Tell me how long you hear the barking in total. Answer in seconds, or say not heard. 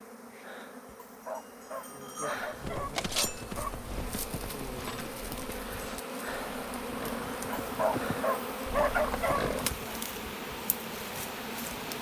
5 s.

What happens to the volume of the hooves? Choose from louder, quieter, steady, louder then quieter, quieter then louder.
quieter then louder.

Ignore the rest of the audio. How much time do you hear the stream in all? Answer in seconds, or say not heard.
8 s.